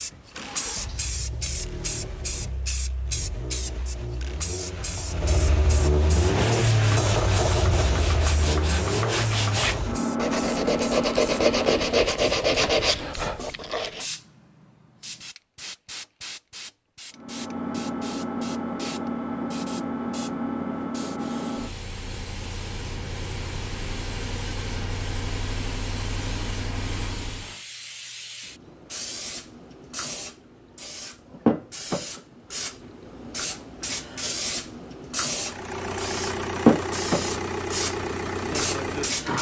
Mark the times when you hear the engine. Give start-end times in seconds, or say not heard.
0.0-12.1, 17.1-27.6, 35.4-39.3.